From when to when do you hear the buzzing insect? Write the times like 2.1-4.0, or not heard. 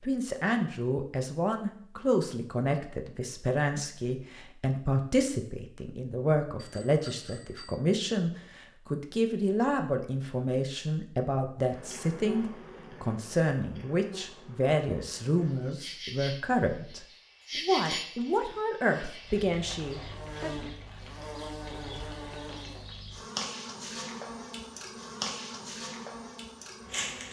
11.6-27.2.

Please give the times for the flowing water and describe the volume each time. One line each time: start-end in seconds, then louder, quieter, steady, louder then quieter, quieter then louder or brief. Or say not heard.
not heard.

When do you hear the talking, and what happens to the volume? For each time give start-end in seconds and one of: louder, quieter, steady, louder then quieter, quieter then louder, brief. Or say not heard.
0.0-20.7 steady.